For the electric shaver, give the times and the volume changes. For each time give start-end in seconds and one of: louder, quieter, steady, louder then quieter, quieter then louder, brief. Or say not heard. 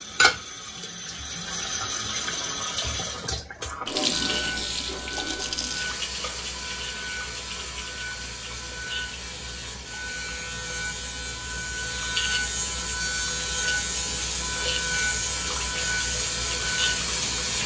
4.1-17.6 louder.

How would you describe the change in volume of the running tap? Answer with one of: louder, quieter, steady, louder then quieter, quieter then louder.
quieter then louder.